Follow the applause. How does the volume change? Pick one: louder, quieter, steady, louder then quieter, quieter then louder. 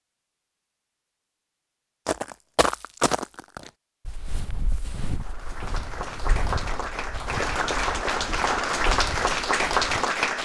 louder.